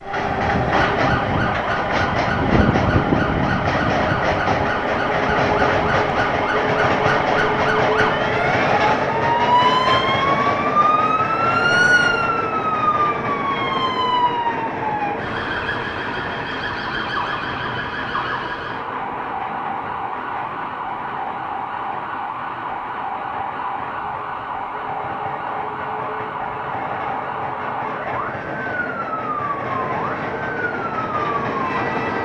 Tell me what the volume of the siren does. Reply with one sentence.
The loudness of the siren goes up, then down.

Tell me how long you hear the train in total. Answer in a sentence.
The train can be heard for 32 seconds in total.